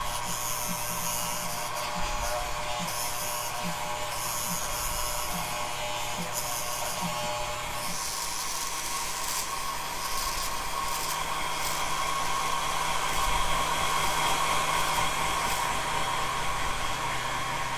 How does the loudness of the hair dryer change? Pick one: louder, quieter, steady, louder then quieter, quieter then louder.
louder.